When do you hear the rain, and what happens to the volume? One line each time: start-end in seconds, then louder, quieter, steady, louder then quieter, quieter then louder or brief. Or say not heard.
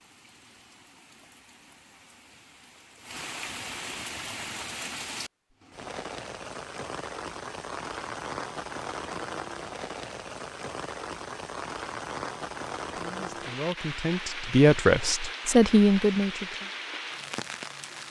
0.0-18.0 louder.